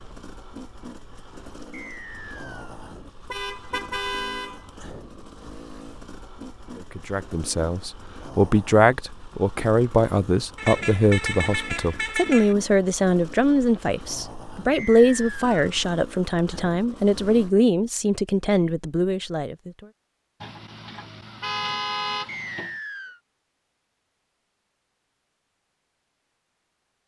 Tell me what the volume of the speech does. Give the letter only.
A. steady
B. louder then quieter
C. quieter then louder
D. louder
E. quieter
A.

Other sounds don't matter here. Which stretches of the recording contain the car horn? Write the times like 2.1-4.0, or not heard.
3.3-4.6, 10.6-12.6, 20.4-22.8.